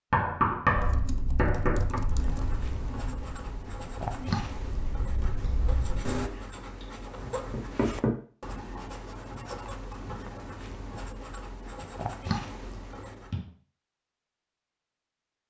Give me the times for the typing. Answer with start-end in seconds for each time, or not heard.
0.8-6.3.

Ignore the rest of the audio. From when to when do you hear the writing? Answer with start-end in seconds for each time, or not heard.
2.0-13.3.